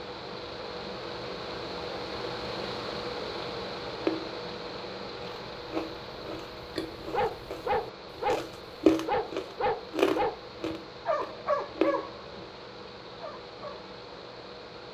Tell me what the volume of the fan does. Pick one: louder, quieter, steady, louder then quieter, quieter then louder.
quieter.